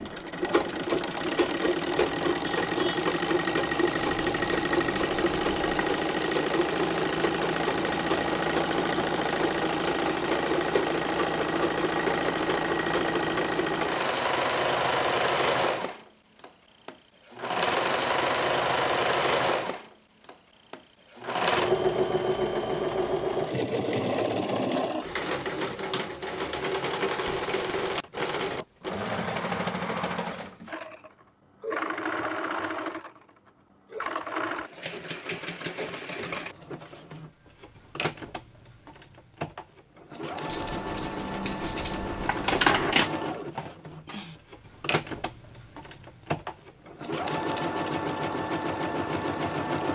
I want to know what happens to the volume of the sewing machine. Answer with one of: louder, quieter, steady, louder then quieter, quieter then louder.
quieter.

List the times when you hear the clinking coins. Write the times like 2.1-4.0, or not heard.
4.0-6.0, 40.5-43.1.